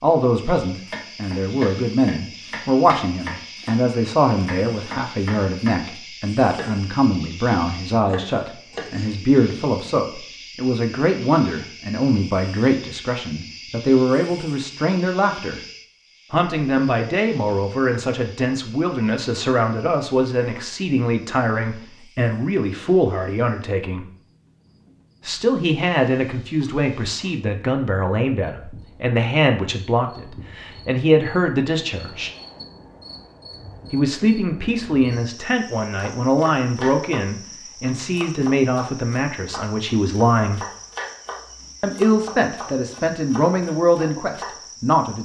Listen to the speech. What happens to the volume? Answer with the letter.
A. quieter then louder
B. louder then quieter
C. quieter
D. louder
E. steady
E.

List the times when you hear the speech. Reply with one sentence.
The speech can be heard from 0.0 to 15.6 s, from 16.3 to 24.1 s, from 25.2 to 32.3 s, from 33.9 to 40.6 s and from 41.8 to 45.2 s.